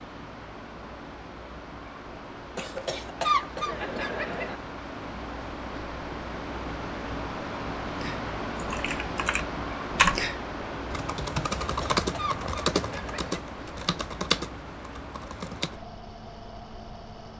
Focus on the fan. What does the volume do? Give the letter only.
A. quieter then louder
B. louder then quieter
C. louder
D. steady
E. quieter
B.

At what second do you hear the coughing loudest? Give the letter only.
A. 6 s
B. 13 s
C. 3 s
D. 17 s
C.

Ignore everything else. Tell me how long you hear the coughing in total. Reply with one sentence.
The coughing can be heard for 4 seconds in total.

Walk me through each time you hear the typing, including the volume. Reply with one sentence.
The typing can be heard from 8.0 to 15.8 s, getting louder then quieter.